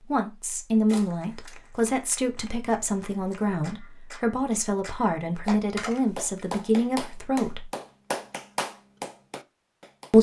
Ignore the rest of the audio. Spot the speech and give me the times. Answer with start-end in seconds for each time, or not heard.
0.1-7.7.